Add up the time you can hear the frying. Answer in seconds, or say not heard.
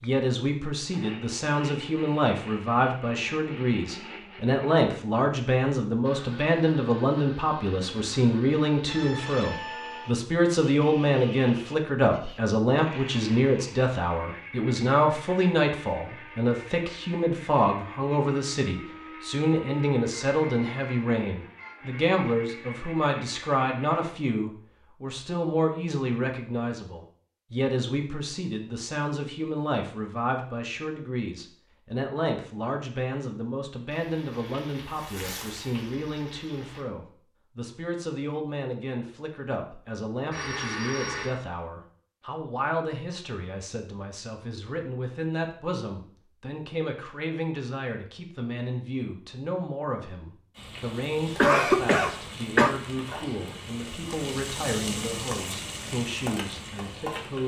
10 s.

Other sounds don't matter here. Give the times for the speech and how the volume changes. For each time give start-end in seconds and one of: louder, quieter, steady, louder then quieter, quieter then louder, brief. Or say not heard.
0.0-57.4 quieter.